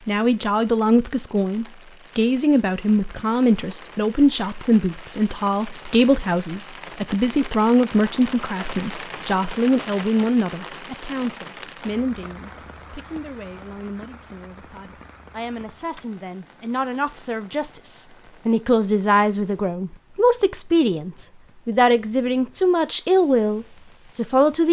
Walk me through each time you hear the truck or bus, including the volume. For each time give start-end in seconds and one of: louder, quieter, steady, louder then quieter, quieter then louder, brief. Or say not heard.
not heard.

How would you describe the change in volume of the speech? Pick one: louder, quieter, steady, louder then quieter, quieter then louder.
quieter then louder.